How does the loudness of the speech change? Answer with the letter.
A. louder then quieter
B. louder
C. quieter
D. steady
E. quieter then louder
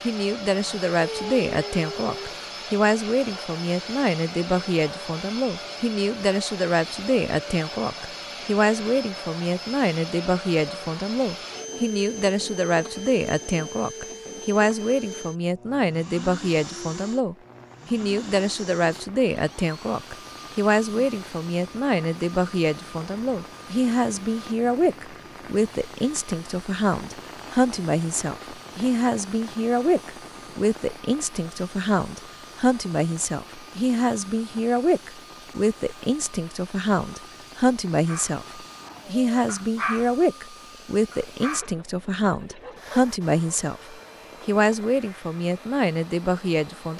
D.